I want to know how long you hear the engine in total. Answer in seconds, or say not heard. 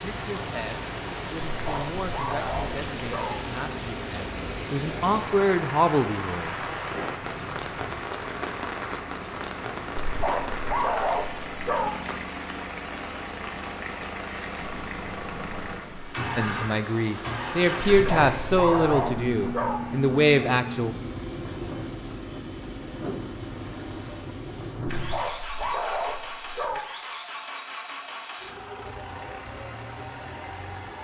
31 s.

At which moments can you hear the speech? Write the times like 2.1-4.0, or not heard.
0.0-6.5, 16.4-20.9.